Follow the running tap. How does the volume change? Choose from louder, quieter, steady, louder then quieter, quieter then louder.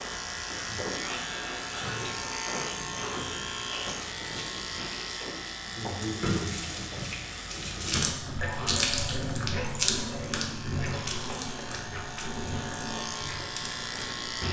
louder then quieter.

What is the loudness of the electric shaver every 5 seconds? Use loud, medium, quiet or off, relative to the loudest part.
loud, medium, loud.